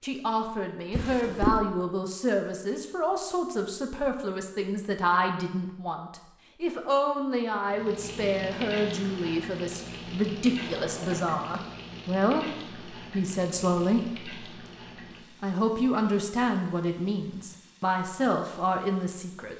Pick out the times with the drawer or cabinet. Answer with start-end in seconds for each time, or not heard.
0.9-1.6, 10.4-11.7.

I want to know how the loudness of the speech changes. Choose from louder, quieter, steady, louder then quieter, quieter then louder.
steady.